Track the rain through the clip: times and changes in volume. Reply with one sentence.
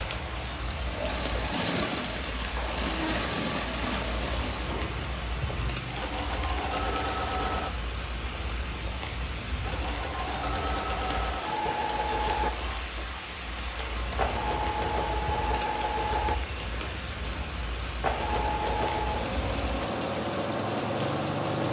You can hear the rain from 0.0 to 21.6 s, at a steady volume.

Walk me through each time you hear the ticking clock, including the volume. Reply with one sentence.
The ticking clock can't be heard in this clip.